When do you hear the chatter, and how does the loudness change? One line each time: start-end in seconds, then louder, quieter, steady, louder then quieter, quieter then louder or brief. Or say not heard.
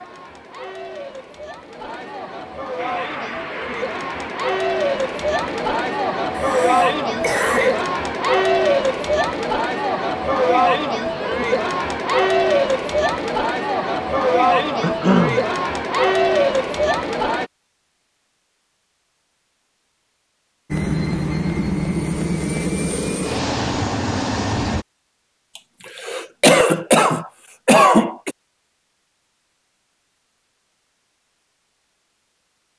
0.0-17.5 louder.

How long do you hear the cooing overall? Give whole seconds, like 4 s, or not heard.
not heard.